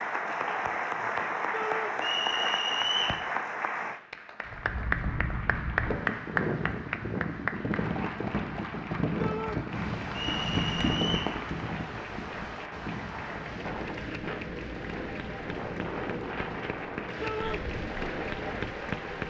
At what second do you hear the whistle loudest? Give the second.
3 s.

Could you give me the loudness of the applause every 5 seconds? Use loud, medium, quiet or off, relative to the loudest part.
loud, loud, medium, medium.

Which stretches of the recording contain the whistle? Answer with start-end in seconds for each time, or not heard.
2.0-3.2, 10.1-11.3.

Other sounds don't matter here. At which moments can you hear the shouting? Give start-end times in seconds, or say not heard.
1.5-1.9, 9.2-9.6, 17.2-17.6.